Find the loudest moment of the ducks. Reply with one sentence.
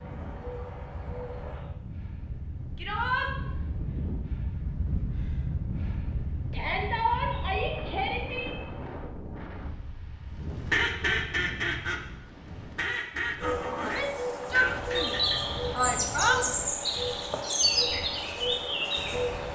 The loudest moment of the ducks is at 11 seconds.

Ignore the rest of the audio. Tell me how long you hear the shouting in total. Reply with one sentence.
The shouting can be heard for 5 seconds in total.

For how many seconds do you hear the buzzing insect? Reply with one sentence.
The buzzing insect can be heard for 10 seconds in total.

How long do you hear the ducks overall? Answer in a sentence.
You can hear the ducks for 5 seconds altogether.